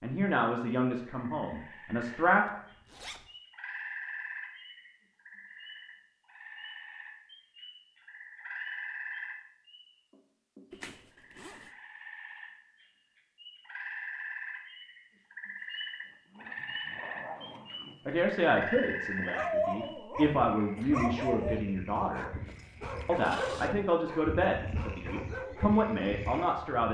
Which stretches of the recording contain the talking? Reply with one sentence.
You can hear the talking from 0.0 to 2.5 s, from 18.1 to 22.3 s and from 23.1 to 26.8 s.